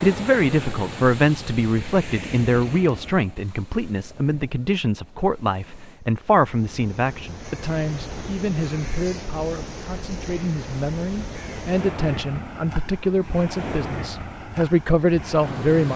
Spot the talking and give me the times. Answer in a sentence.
The talking can be heard from 0.0 to 15.9 s.